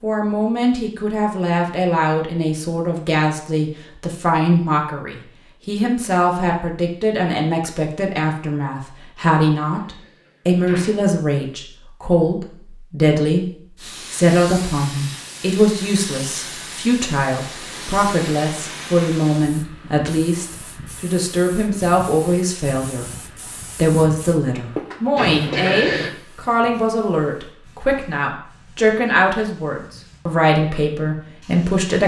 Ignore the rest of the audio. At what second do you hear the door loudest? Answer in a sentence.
The volume of the door peaks at 26 seconds.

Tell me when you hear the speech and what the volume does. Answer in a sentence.
You can hear the speech from 0.0 to 32.0 s, at a steady volume.